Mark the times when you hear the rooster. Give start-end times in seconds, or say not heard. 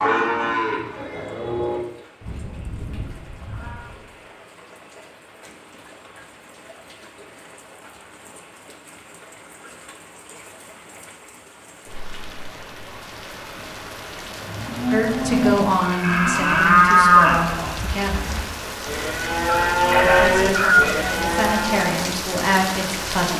19.4-21.0.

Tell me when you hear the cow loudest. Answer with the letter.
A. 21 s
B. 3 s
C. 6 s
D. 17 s
D.